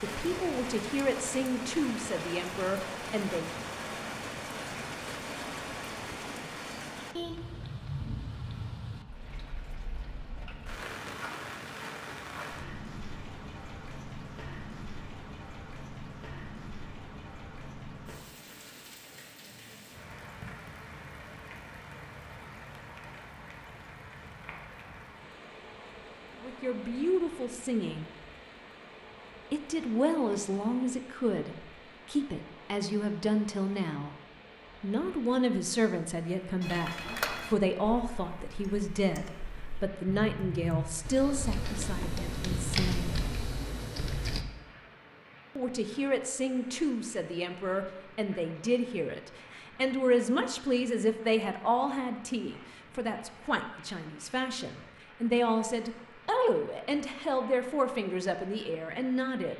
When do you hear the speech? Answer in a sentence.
The speech can be heard from 0.0 to 3.5 s, from 26.4 to 28.1 s, from 29.5 to 34.1 s, from 34.8 to 43.1 s and from 45.5 to 59.5 s.